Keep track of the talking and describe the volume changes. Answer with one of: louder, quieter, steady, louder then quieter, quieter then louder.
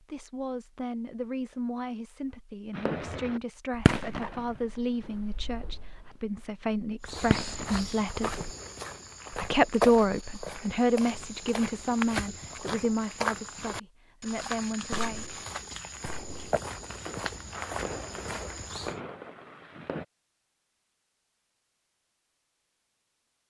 louder then quieter.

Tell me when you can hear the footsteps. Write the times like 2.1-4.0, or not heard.
7.0-19.0.